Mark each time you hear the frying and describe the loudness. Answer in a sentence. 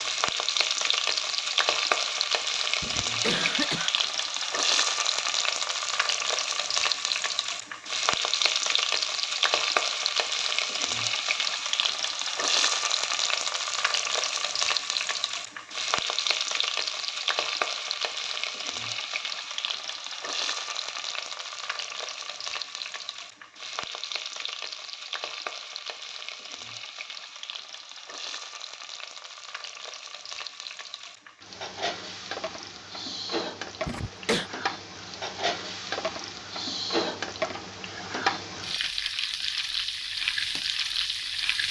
The frying can be heard from 0.0 to 41.6 s, getting quieter then louder.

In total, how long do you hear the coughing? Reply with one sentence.
The coughing can be heard for 2 seconds in total.